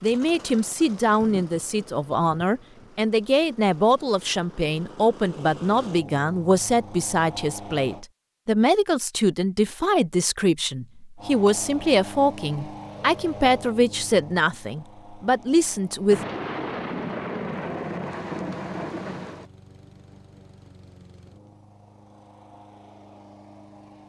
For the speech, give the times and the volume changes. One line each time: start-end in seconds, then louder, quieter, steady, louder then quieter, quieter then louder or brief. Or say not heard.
0.0-16.2 steady.